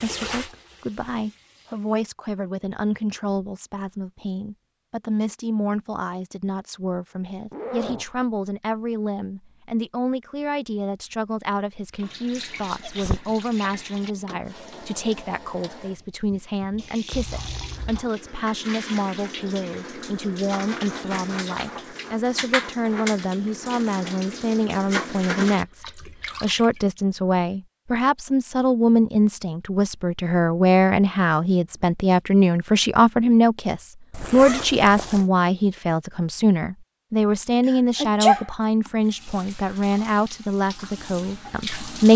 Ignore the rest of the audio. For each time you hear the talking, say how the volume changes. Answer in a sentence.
The talking can be heard from 0.0 to 42.1 s, getting louder.